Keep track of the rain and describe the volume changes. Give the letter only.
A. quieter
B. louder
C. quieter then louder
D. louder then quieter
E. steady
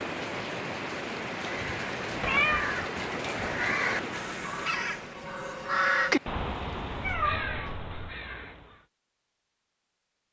A.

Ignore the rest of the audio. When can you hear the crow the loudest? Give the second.
6 s.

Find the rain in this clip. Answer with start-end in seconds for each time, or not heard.
0.0-7.2.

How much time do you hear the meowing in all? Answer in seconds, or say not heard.
2 s.